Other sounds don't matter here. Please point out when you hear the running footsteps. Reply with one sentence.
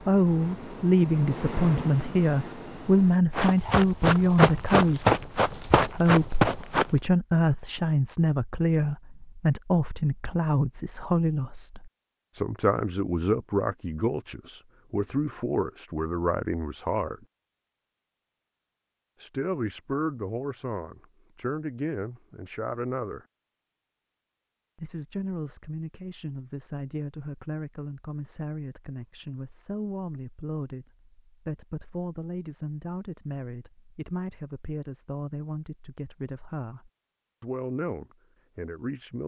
You can hear the running footsteps from 3.4 to 7.0 s.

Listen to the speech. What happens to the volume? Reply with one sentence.
The volume of the speech goes down.